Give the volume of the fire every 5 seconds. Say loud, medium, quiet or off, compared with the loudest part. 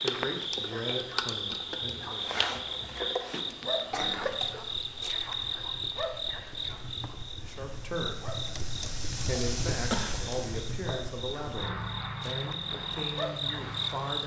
medium, loud, loud.